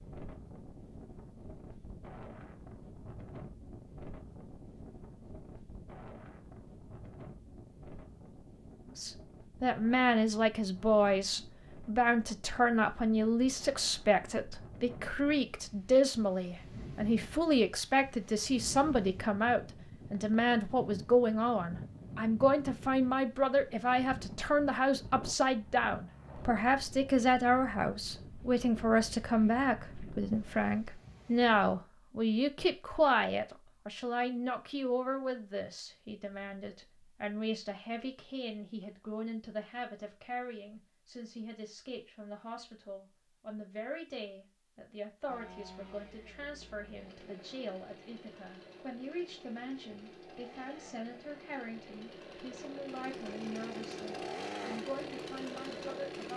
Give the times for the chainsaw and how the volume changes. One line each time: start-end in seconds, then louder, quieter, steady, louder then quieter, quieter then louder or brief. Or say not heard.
45.2-56.3 louder.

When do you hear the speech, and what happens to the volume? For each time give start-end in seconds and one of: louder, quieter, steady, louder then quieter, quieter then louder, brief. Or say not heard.
8.9-56.3 quieter.